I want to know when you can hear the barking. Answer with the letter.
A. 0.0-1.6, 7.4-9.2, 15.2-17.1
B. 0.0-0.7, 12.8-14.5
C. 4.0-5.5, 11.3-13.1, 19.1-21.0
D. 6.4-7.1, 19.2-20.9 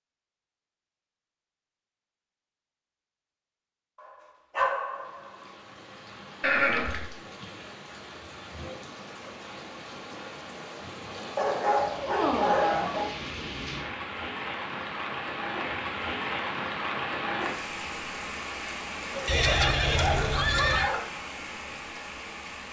C.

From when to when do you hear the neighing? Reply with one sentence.
You can hear the neighing from 6.4 to 7.1 s and from 19.2 to 20.9 s.